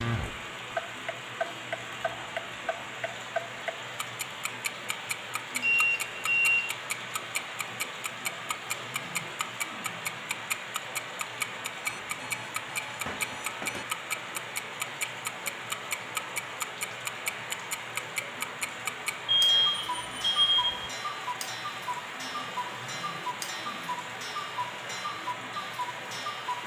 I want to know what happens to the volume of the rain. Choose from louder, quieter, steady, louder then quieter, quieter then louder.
steady.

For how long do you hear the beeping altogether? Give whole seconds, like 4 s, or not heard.
5 s.